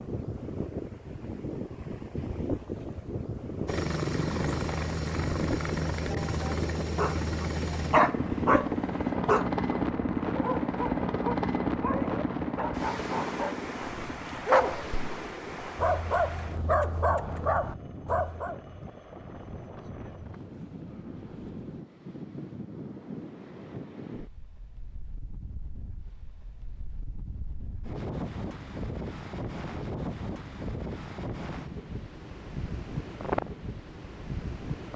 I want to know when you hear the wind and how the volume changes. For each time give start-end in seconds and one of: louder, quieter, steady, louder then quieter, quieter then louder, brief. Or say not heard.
0.0-34.9 quieter then louder.